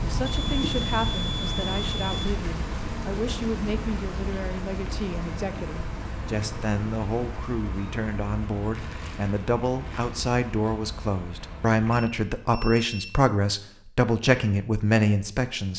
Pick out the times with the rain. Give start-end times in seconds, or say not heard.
0.0-12.1.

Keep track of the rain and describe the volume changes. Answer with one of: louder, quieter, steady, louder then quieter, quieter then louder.
quieter.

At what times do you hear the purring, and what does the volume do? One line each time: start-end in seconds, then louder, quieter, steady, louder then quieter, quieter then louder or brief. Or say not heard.
not heard.